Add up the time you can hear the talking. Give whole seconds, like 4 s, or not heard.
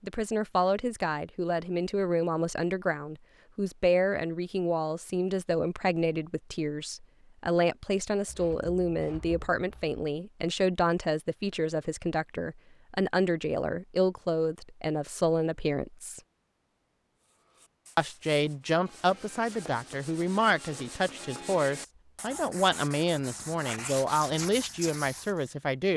24 s.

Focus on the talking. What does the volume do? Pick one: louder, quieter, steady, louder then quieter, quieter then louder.
steady.